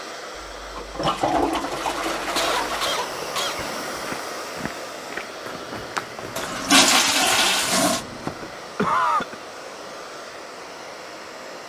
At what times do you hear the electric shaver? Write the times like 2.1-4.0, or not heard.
not heard.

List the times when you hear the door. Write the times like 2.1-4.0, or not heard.
not heard.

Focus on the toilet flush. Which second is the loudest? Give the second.
7 s.